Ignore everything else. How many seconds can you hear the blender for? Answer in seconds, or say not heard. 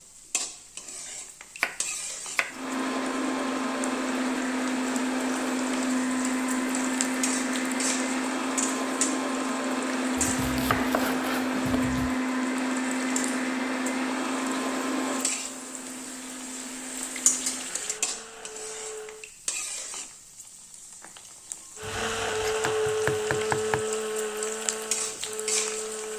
21 s.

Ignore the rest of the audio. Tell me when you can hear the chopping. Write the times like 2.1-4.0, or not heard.
1.6-2.6, 10.2-12.2, 21.8-23.9.